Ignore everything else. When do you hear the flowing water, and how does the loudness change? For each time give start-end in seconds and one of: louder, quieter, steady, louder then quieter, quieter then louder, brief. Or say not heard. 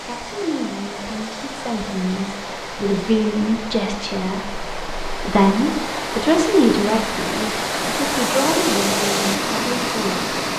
0.0-10.5 louder.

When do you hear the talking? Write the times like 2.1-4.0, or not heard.
0.1-10.3.